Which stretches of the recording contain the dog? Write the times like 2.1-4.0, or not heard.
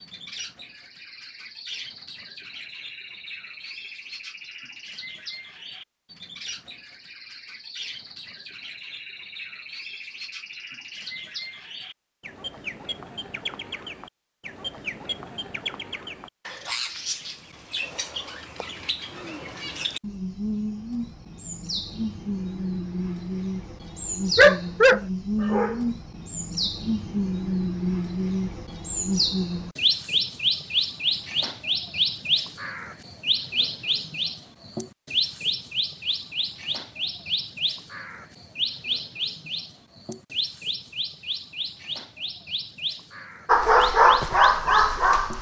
24.4-25.9, 43.5-45.3.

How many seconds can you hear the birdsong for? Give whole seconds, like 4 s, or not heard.
45 s.